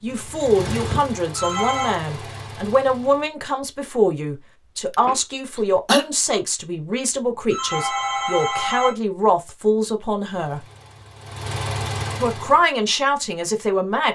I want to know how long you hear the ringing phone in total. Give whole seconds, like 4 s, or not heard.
2 s.